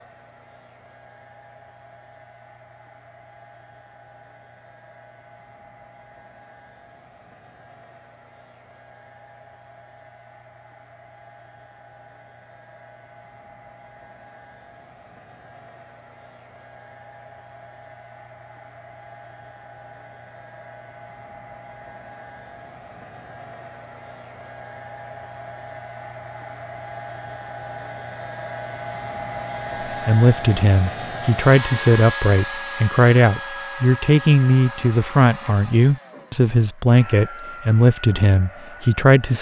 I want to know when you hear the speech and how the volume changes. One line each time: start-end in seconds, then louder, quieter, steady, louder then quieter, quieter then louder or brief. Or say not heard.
30.1-39.3 steady.